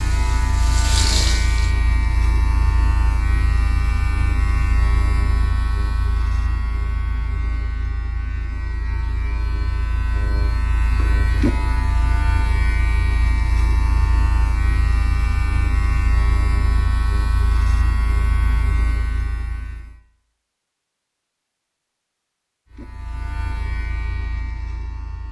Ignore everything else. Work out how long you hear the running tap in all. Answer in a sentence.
The running tap can be heard for 2 seconds in total.